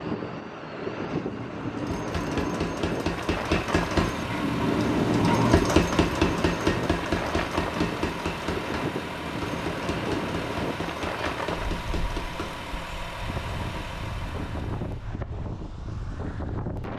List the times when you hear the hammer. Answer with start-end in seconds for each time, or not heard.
1.1-12.8.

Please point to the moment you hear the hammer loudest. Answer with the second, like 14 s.
6 s.